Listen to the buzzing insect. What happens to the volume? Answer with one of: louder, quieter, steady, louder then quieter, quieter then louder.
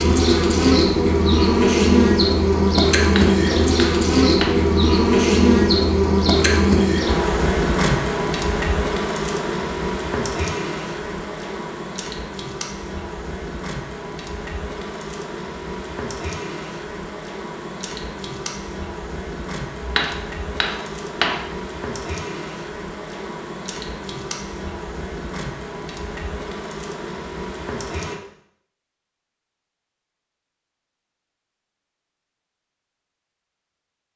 quieter.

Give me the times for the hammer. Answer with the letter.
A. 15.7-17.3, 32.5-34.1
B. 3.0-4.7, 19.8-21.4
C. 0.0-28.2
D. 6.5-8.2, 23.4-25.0
B.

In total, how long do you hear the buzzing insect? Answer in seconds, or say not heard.
28 s.